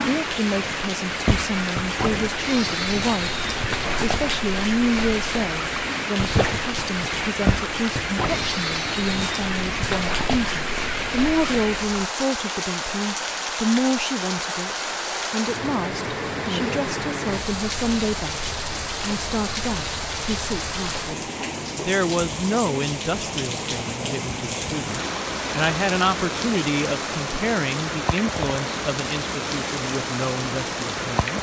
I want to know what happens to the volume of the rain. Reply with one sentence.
The loudness of the rain stays about the same.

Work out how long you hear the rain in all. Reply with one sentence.
You can hear the rain for 31 seconds altogether.